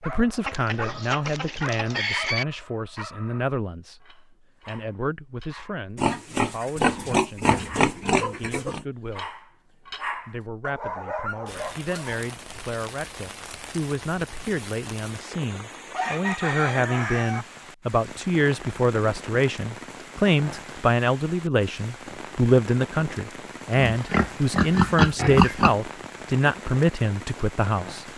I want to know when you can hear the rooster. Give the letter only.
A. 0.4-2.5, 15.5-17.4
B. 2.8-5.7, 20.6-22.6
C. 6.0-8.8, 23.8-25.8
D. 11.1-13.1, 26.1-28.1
A.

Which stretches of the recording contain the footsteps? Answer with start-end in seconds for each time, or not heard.
not heard.